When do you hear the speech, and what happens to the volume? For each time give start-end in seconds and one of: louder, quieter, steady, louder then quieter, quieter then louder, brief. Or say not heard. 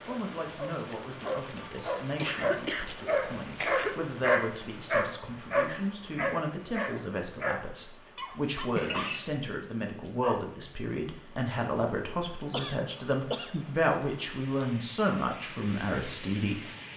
0.1-16.8 louder.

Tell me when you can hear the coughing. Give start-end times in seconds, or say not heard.
2.1-4.0, 8.8-9.3, 12.5-13.8.